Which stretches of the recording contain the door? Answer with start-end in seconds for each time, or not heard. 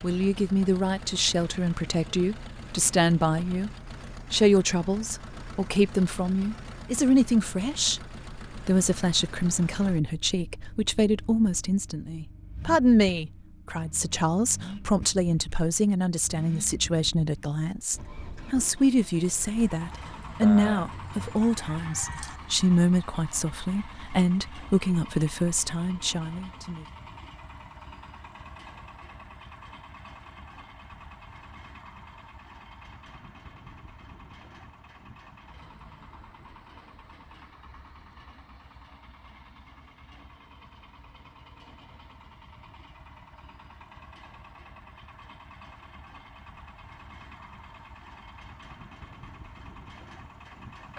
not heard.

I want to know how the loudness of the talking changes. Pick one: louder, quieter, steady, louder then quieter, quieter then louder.
steady.